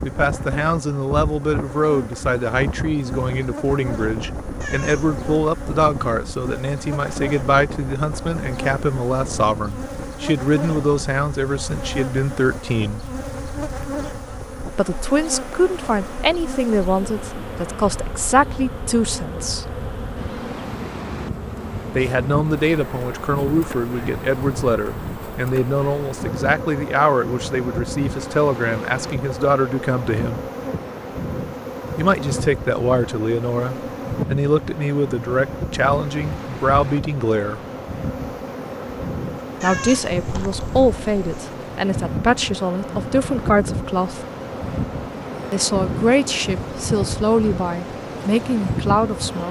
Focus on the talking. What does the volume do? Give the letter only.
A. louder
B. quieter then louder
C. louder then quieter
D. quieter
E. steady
E.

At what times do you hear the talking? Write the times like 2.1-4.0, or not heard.
0.0-13.1, 14.8-19.7, 21.9-30.4, 31.9-37.6, 39.6-44.2, 45.5-49.4.